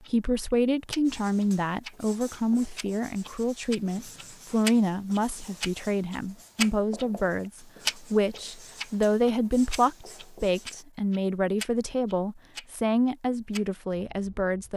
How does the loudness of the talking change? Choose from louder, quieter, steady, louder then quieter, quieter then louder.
steady.